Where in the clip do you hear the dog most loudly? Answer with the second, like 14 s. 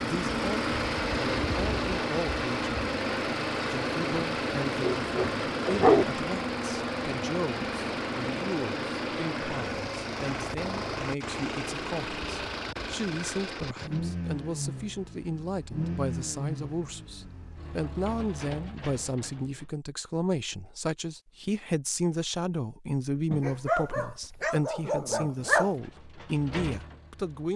6 s.